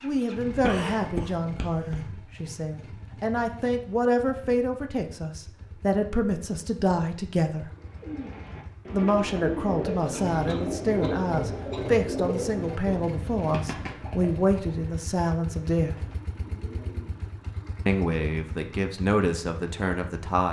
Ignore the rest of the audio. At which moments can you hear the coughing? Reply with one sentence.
The coughing can be heard from 0.6 to 2.0 s and from 10.4 to 11.8 s.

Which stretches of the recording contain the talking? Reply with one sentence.
The talking can be heard from 0.0 to 7.7 s, from 8.9 to 15.9 s and from 17.9 to 20.4 s.